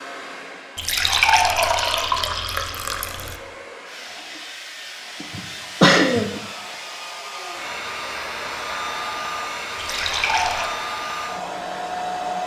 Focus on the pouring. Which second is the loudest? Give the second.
1 s.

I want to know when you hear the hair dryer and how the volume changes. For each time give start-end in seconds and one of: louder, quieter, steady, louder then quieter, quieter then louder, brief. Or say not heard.
0.0-12.4 louder.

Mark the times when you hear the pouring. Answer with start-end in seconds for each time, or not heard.
0.8-3.4, 9.8-10.8.